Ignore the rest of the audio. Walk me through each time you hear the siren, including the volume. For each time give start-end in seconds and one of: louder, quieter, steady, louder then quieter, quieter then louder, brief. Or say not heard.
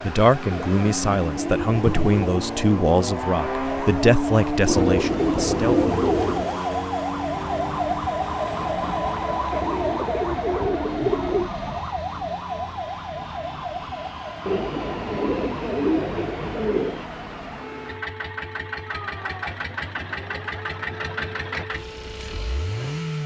0.0-23.2 louder then quieter.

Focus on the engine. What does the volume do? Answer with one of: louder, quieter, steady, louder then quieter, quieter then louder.
quieter then louder.